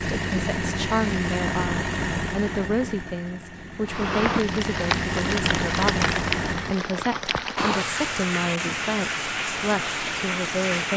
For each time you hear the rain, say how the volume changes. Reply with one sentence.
You can hear the rain from 3.9 to 10.9 s, at a steady volume.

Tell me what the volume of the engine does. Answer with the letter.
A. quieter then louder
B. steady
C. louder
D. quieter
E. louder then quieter
A.